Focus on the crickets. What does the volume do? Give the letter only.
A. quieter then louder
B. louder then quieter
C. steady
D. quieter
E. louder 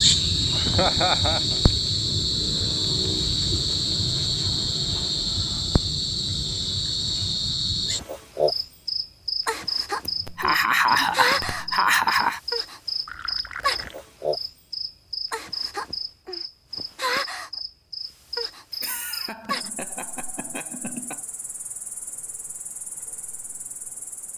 D.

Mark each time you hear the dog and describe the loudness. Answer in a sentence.
The dog can't be heard in this clip.